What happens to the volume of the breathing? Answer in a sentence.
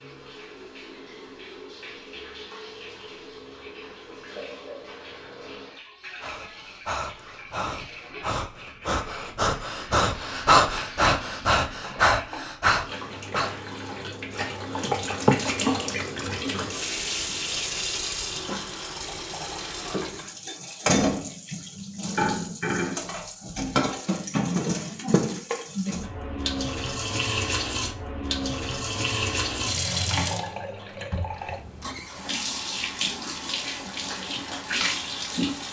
The loudness of the breathing goes up.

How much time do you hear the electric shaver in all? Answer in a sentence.
You can't hear the electric shaver here.